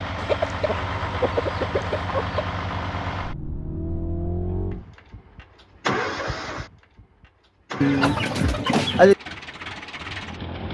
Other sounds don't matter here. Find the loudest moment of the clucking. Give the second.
9 s.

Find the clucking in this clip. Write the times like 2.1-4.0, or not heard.
0.1-2.5, 7.8-9.2.